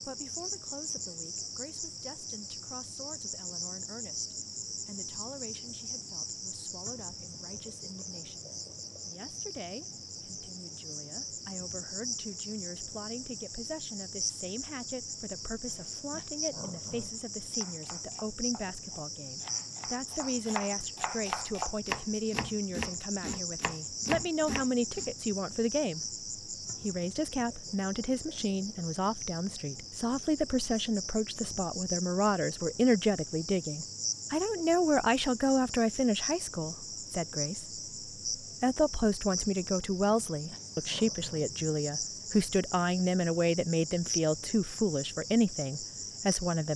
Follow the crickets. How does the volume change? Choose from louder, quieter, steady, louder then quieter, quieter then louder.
steady.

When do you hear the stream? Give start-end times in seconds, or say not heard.
not heard.